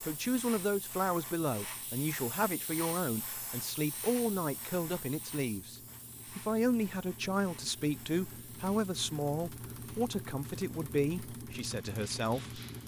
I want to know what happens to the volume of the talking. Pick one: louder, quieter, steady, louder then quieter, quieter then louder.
steady.